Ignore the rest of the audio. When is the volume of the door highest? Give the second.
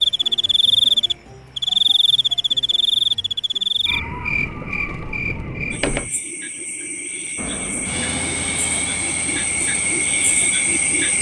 6 s.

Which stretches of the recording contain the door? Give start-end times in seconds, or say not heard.
4.3-6.1.